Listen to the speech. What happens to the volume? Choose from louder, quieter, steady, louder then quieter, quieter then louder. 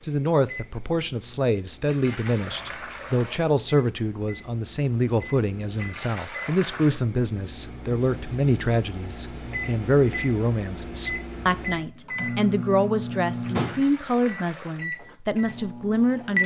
steady.